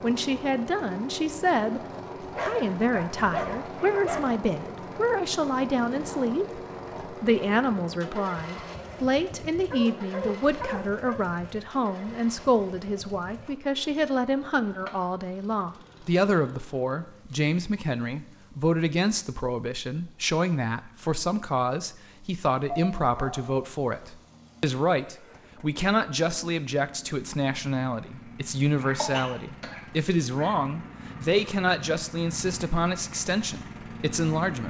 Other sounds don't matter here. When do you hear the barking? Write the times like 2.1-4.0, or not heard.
2.3-4.2, 9.7-11.2, 22.7-23.6, 28.8-30.6.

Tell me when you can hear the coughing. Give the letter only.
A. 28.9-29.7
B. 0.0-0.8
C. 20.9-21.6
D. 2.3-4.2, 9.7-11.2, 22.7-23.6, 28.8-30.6
A.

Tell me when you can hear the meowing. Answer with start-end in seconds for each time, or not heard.
not heard.